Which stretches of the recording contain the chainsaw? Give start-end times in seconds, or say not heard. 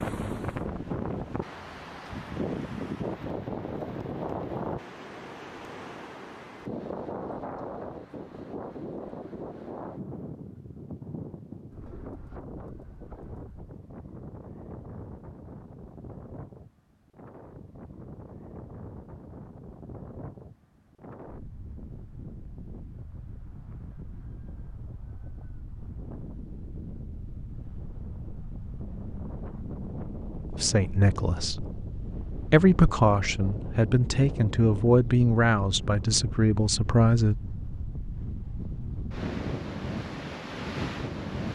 not heard.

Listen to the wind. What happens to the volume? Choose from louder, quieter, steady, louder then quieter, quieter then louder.
quieter then louder.